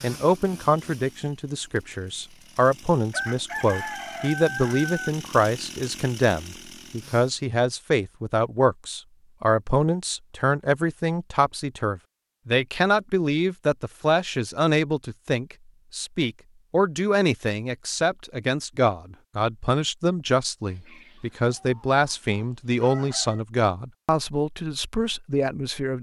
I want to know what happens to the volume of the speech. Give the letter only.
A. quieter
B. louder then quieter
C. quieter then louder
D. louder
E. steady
E.